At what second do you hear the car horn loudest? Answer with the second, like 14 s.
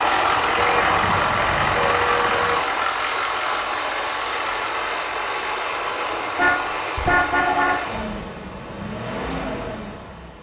7 s.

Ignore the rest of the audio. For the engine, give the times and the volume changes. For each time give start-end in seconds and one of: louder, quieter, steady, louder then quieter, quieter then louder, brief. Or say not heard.
0.0-10.3 quieter.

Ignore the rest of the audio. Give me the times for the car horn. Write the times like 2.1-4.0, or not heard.
0.6-2.6, 6.3-7.8.